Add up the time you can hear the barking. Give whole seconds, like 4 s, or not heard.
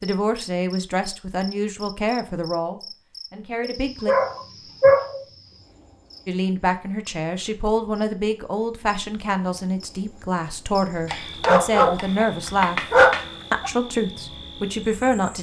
4 s.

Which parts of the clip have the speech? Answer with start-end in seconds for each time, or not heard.
0.0-4.2, 6.2-12.8, 13.5-15.3.